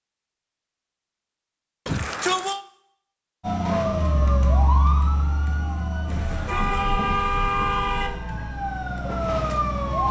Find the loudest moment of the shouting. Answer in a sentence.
The loudest moment of the shouting is at 2 seconds.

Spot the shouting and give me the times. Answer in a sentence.
You can hear the shouting from 1.9 to 2.6 s and from 6.1 to 7.0 s.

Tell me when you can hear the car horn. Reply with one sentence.
The car horn can be heard from 6.0 to 8.1 s.